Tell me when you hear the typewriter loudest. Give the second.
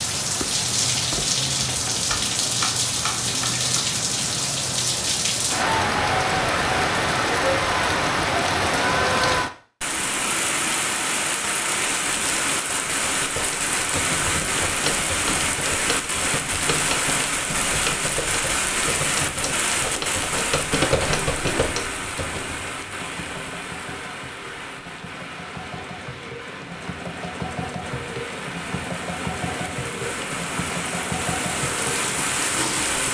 21 s.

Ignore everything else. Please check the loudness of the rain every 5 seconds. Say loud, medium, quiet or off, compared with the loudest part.
loud, loud, loud, loud, medium, quiet, medium.